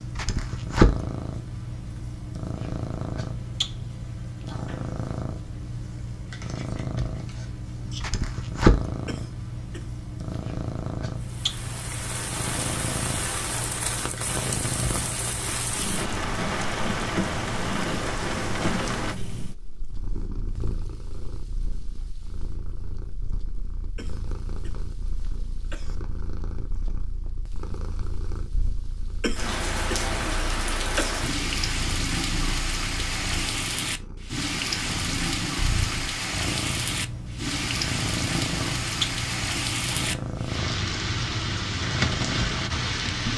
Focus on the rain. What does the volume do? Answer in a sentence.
The loudness of the rain goes down, then up.